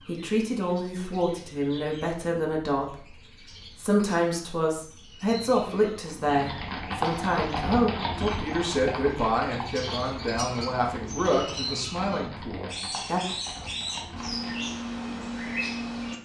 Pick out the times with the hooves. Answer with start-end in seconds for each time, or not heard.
6.0-14.9.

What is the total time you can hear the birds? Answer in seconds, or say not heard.
16 s.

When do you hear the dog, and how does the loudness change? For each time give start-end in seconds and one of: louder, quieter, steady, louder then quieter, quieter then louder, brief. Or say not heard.
not heard.